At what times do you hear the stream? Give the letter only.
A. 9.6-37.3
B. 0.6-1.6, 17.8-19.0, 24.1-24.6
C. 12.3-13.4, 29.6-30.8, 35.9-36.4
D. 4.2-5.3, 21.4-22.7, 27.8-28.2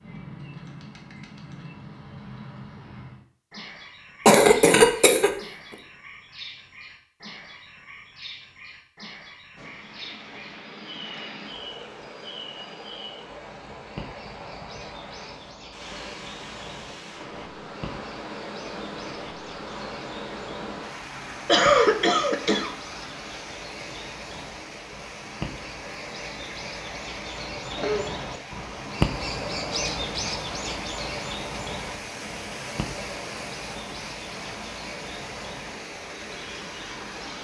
A.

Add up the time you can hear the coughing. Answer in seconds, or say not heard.
3 s.